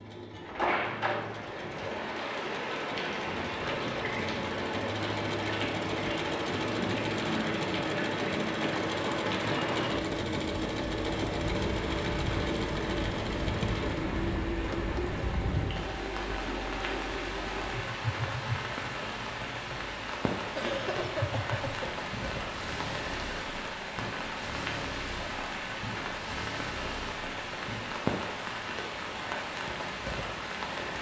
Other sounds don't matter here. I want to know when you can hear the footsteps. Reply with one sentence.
You can't hear the footsteps here.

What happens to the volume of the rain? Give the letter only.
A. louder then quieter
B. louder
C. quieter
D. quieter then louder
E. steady
E.